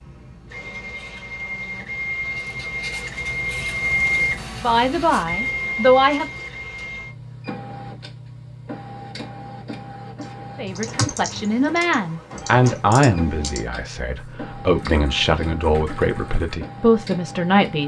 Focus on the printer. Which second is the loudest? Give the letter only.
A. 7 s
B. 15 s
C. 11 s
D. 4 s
D.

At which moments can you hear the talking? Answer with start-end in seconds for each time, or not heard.
4.6-6.3, 10.6-17.8.